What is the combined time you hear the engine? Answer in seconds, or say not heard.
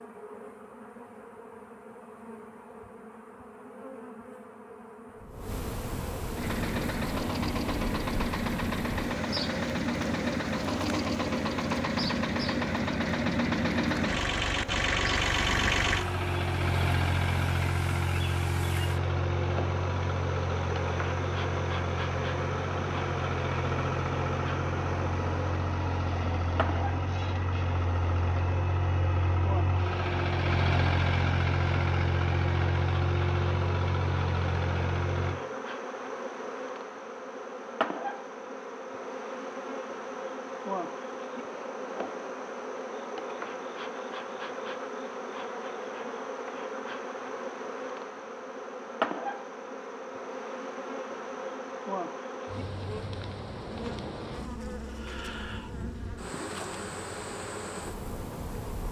29 s.